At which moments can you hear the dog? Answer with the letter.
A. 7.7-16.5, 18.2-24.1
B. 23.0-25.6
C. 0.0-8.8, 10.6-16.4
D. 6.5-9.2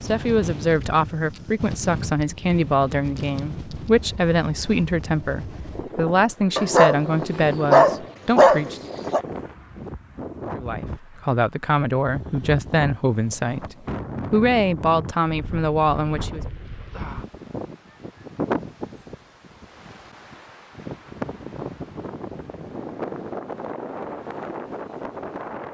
D.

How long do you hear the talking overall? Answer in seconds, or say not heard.
15 s.